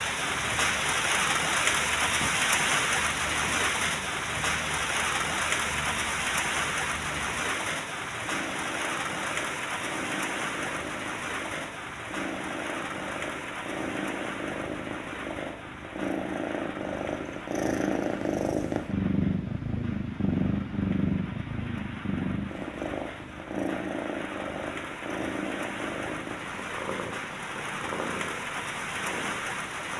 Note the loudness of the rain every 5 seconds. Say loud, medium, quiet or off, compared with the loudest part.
loud, loud, medium, quiet, quiet, medium.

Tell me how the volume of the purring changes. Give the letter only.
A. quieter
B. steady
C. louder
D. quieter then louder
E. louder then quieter
E.